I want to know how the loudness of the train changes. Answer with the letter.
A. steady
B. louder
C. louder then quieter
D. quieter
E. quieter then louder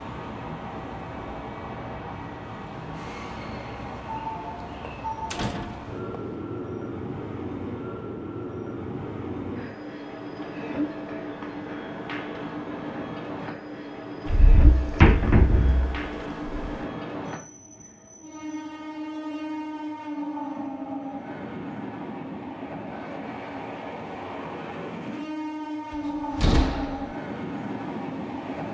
A.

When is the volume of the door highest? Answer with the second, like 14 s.
15 s.